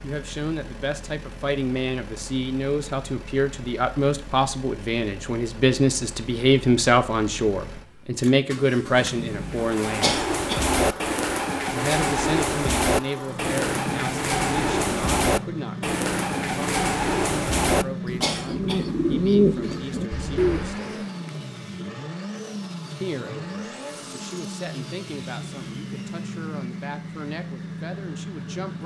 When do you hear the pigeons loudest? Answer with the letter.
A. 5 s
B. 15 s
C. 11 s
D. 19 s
D.